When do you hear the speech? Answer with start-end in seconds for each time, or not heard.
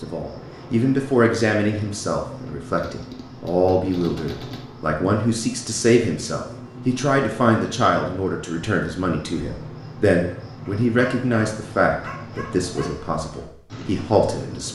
0.0-14.7.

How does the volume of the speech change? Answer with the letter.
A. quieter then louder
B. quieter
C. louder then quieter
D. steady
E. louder
D.